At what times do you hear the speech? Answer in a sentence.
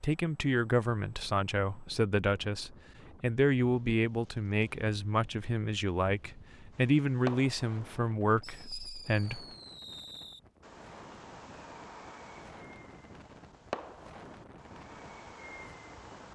The speech can be heard from 0.0 to 9.4 s.